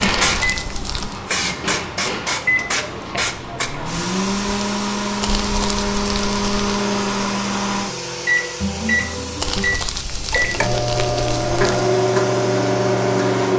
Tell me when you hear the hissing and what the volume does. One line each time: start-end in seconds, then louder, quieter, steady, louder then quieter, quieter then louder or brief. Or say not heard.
0.0-13.5 quieter.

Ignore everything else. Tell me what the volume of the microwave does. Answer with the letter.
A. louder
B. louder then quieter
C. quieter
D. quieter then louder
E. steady
A.